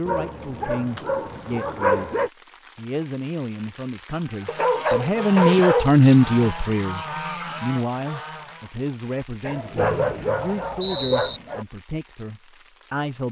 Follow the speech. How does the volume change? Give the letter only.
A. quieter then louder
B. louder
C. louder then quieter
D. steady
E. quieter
C.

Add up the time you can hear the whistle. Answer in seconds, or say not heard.
2 s.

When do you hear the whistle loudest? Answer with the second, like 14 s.
11 s.